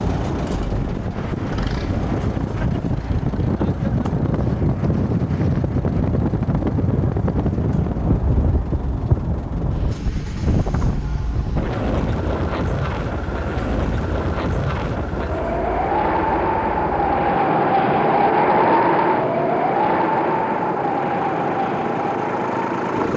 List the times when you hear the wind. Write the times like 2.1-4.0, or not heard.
0.0-23.1.